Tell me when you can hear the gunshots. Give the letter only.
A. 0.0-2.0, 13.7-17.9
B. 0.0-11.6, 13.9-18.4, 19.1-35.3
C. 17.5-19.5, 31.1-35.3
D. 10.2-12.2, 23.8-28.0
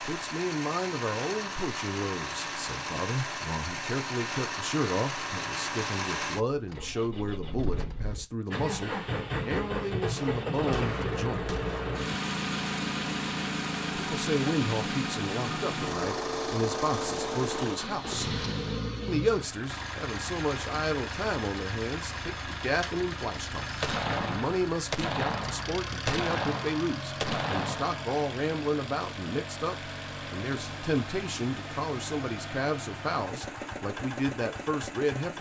D.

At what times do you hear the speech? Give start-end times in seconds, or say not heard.
0.0-11.6, 13.9-18.4, 19.1-35.3.